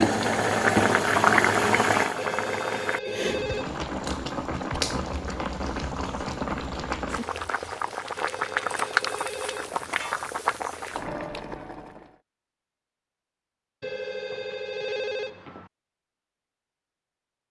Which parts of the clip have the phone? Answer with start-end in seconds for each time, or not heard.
2.1-3.8, 8.2-10.0, 13.8-15.7.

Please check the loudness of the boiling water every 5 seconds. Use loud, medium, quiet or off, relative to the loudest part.
loud, medium, medium, off.